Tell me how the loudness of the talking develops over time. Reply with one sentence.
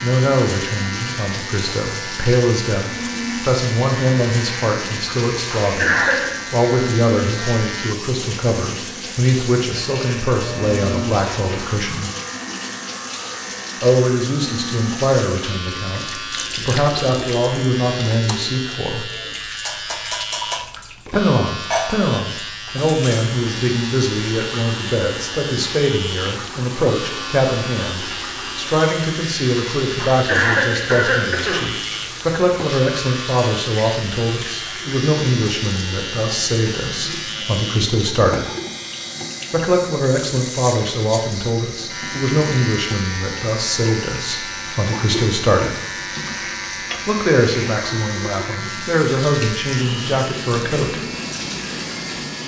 The volume of the talking stays about the same.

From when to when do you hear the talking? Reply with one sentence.
You can hear the talking from 0.0 to 12.1 s, from 13.8 to 19.1 s, from 21.1 to 38.5 s, from 39.5 to 45.8 s and from 47.0 to 51.0 s.